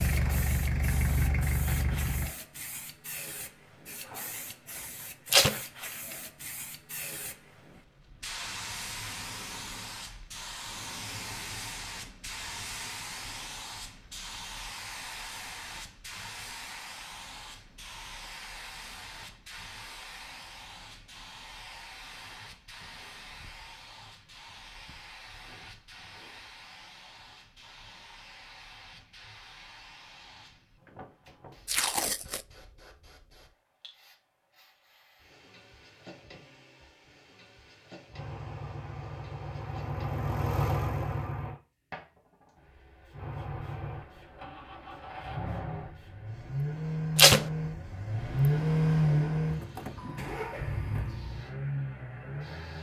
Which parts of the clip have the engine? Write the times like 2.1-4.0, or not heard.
0.0-2.4, 38.1-41.6, 43.1-52.7.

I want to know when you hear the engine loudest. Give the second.
49 s.